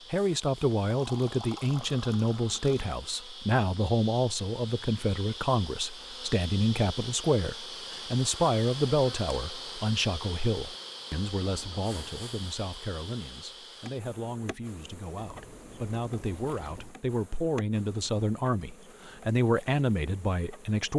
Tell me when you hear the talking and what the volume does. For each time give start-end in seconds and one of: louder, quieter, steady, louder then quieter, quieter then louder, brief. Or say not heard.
0.1-20.9 quieter then louder.